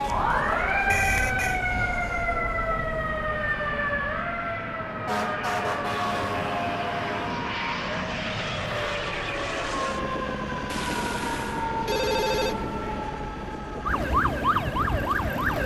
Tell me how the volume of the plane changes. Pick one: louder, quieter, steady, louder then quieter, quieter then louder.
louder then quieter.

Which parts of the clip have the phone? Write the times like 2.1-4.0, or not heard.
0.9-1.6, 10.7-12.6.